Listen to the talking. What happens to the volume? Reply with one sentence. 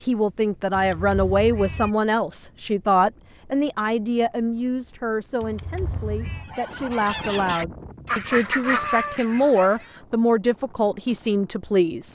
The volume of the talking goes down, then up.